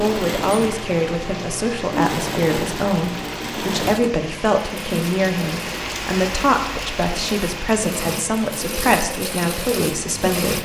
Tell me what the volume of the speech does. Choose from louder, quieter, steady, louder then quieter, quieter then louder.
steady.